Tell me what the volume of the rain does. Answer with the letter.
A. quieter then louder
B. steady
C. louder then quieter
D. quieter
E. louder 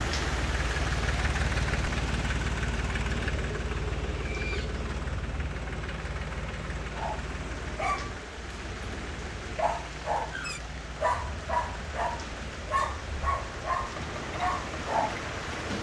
A.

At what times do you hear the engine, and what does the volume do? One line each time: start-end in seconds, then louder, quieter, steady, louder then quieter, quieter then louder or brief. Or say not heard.
0.0-15.7 quieter.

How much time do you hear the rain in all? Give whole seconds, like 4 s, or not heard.
16 s.